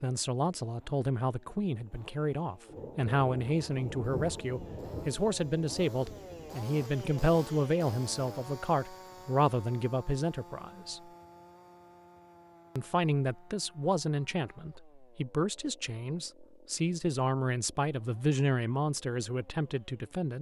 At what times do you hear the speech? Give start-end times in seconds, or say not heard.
0.0-11.0, 12.8-20.3.